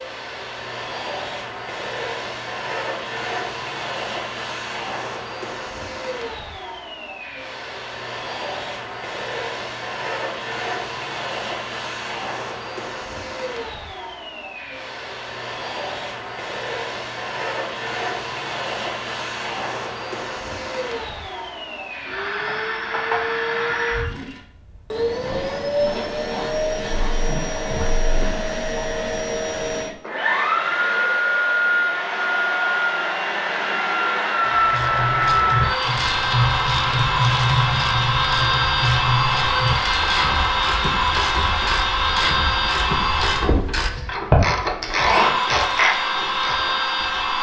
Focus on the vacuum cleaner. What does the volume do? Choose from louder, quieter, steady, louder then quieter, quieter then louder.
louder.